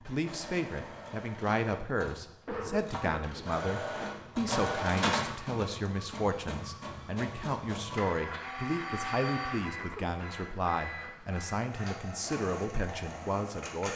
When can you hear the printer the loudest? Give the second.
5 s.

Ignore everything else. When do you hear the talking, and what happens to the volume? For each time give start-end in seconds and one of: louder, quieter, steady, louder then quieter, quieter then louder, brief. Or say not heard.
0.1-13.9 steady.